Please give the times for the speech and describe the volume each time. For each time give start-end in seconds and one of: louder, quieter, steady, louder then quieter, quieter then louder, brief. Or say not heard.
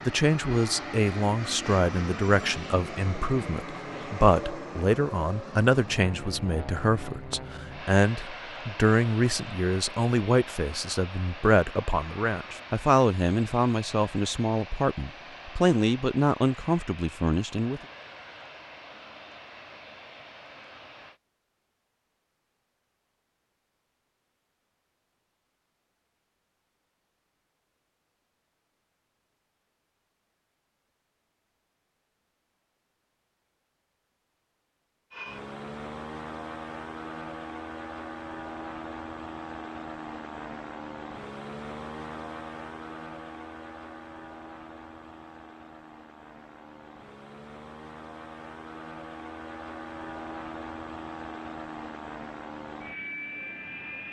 0.0-17.8 steady.